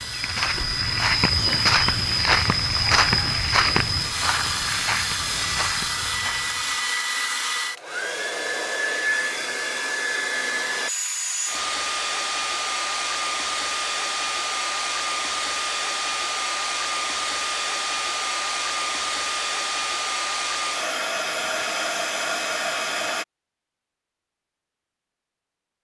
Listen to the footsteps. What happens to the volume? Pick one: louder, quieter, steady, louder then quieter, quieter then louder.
quieter.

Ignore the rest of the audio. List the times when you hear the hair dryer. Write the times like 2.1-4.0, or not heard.
0.0-23.2.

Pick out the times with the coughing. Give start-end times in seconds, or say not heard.
not heard.